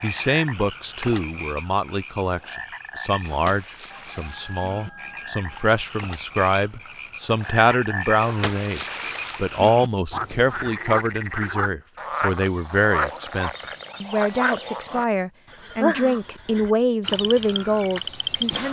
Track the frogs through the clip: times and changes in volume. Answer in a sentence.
You can hear the frogs from 0.0 to 18.6 s, getting louder.